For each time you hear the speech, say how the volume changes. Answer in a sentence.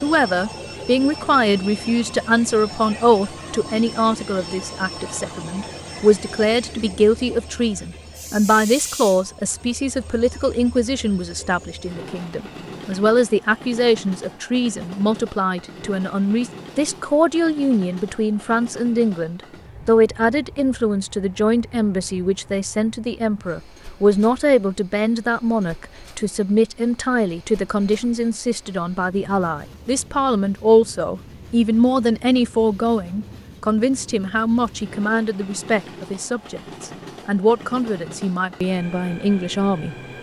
You can hear the speech from 0.0 to 39.9 s, at a steady volume.